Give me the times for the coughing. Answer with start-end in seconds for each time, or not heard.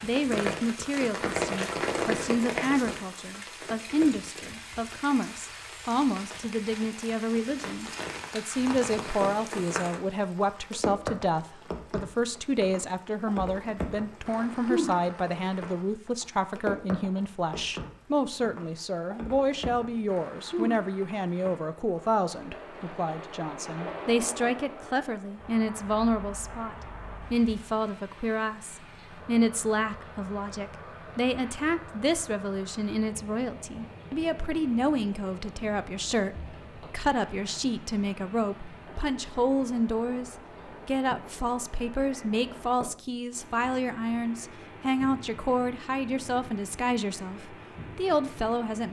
not heard.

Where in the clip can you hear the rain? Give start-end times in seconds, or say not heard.
0.0-48.8.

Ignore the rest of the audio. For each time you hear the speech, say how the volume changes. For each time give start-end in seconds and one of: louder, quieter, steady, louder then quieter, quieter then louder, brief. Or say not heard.
0.0-48.8 steady.